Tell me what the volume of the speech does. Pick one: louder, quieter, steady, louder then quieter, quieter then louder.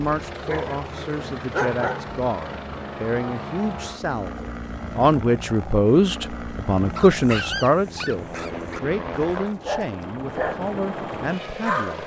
louder then quieter.